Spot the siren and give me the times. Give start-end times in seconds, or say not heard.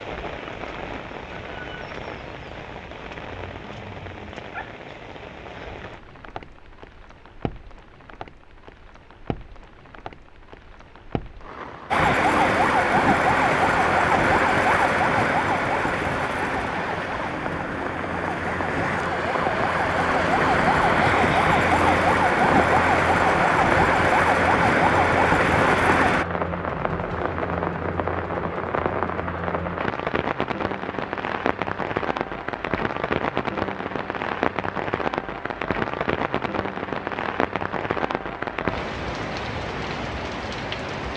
11.9-26.2.